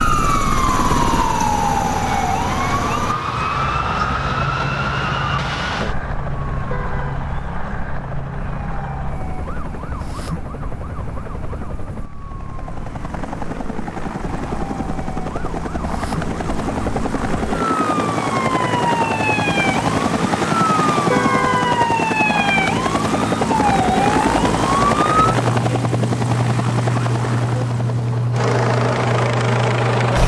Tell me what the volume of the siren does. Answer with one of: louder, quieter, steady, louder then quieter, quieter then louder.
quieter then louder.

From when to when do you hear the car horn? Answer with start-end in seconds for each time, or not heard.
6.7-7.2, 21.1-21.9.